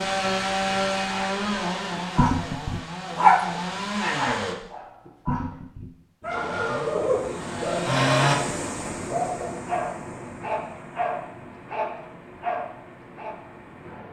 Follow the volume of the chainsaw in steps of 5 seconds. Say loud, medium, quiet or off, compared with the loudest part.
loud, loud, off.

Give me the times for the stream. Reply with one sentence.
The stream can be heard from 6.2 to 14.0 s.